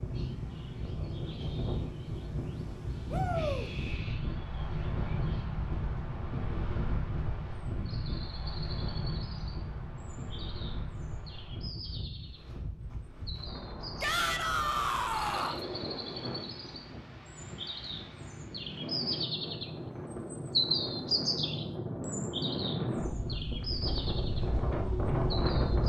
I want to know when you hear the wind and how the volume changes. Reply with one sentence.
The wind can be heard from 0.0 to 25.8 s, getting quieter then louder.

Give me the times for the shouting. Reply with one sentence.
You can hear the shouting from 3.1 to 3.7 s and from 14.0 to 15.6 s.